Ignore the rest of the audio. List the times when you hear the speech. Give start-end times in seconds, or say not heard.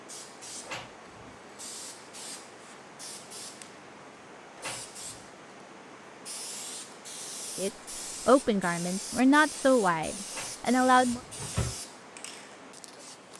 7.5-11.2.